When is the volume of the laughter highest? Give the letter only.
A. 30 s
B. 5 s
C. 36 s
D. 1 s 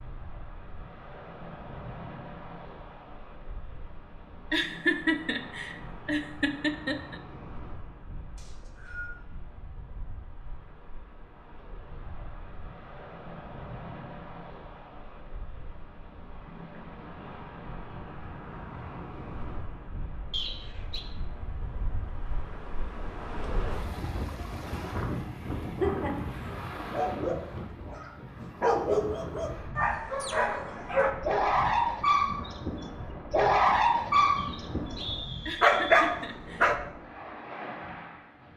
B.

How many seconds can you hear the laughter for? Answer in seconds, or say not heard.
4 s.